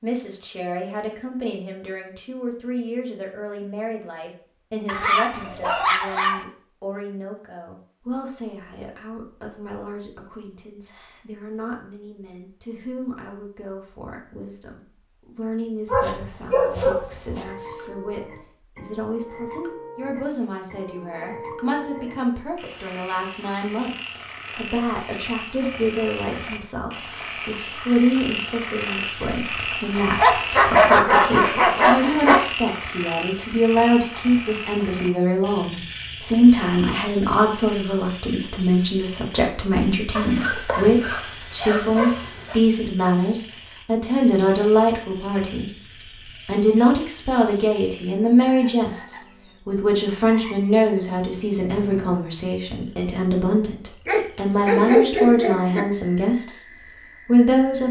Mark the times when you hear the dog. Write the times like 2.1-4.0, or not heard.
4.8-6.5, 15.9-17.4, 30.1-32.5, 40.1-42.6, 54.0-55.9.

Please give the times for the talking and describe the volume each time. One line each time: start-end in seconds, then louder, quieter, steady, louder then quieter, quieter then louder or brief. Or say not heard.
0.0-56.6 louder
57.2-57.8 brief.